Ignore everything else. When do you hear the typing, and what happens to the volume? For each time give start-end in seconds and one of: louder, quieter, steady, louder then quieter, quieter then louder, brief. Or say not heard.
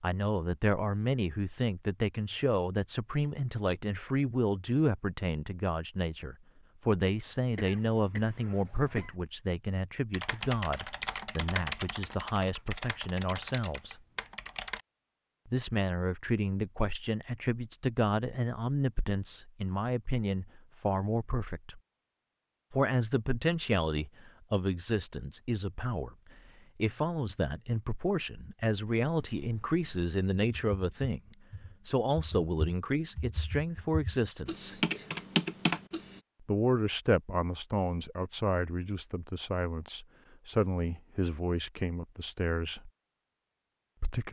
10.1-14.8 quieter
29.1-36.2 louder.